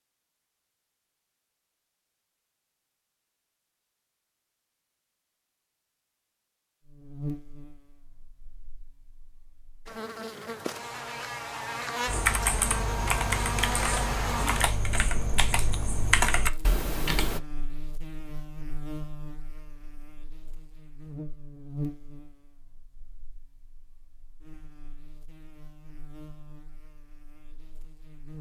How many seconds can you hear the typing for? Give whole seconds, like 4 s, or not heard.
5 s.